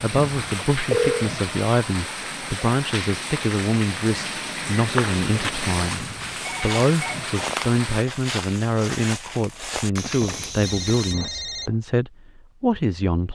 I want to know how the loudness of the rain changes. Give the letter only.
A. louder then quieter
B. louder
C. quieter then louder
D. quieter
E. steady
E.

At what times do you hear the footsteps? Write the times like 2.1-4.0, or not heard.
4.8-11.2.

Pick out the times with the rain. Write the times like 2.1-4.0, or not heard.
0.0-8.1.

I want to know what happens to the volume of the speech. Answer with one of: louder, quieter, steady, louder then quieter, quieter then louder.
steady.